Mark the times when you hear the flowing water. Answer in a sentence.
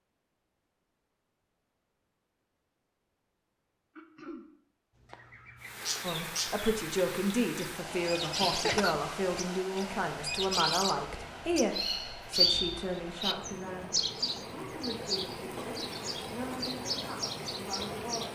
You can hear the flowing water from 5.5 to 18.3 s.